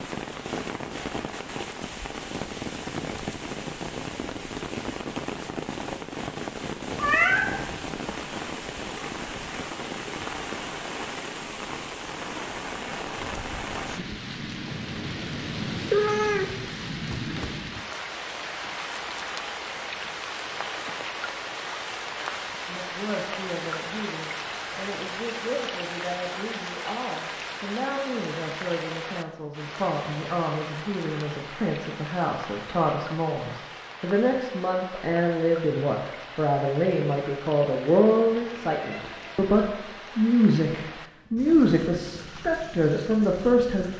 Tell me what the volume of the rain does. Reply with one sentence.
The volume of the rain goes down.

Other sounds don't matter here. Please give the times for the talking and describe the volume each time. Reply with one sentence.
The talking can be heard from 22.6 to 43.9 s, getting louder.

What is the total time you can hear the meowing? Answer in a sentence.
You can hear the meowing for 4 seconds altogether.